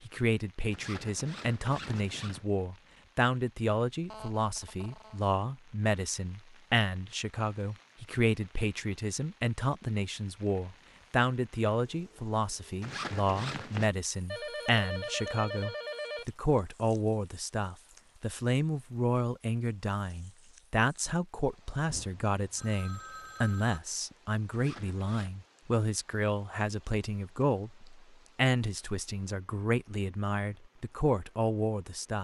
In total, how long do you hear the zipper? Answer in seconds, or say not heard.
4 s.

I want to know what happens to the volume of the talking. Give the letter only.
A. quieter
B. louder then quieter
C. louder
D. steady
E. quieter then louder
D.